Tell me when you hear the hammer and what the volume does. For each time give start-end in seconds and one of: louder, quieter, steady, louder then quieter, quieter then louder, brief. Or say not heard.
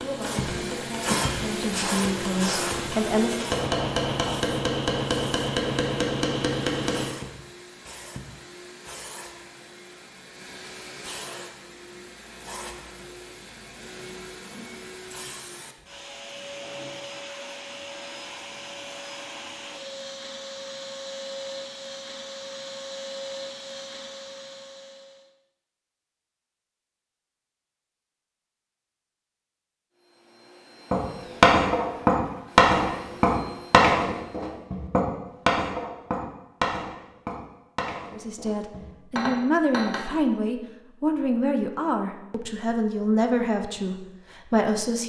0.0-7.2 louder
30.9-40.0 quieter.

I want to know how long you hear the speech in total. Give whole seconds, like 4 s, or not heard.
10 s.